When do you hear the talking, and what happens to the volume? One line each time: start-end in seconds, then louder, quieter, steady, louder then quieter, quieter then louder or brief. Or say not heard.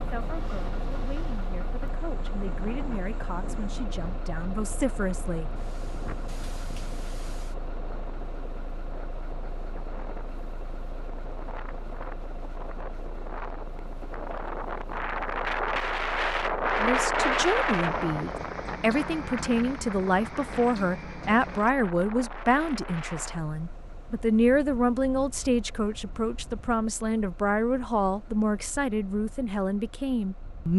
0.0-5.6 louder
16.8-30.7 steady.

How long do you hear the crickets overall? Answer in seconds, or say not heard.
not heard.